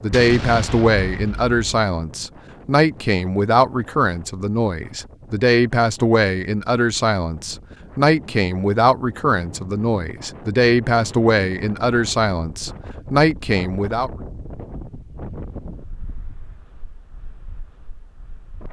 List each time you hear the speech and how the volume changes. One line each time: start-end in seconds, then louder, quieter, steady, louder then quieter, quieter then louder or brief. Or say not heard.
0.0-14.1 steady.